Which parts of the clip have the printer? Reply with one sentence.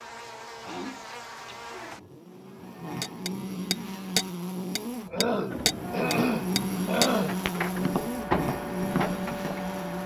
The printer can be heard from 5.5 to 10.0 s.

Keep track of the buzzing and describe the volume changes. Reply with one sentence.
The loudness of the buzzing goes up.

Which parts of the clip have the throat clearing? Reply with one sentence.
The throat clearing can be heard from 0.6 to 1.6 s and from 5.1 to 7.4 s.